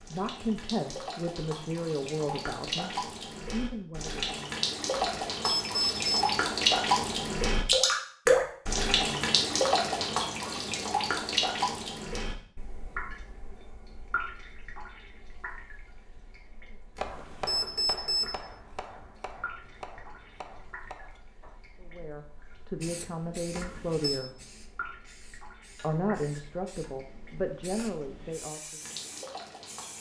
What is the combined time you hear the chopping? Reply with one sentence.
The chopping can be heard for 5 seconds in total.